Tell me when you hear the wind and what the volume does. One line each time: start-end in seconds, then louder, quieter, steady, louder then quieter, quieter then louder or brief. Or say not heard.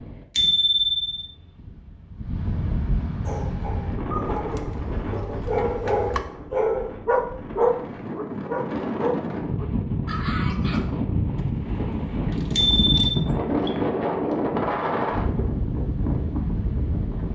0.0-17.2 louder.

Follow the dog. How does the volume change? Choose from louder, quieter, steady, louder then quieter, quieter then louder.
louder then quieter.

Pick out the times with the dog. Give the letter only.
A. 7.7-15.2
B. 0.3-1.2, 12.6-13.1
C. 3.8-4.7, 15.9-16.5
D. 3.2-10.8
D.